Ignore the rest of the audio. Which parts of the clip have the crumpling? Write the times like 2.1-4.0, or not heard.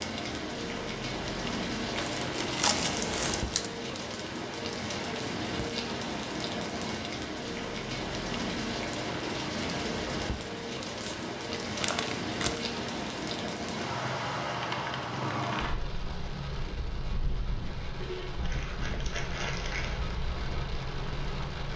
1.9-3.7, 11.0-12.6, 18.4-20.0.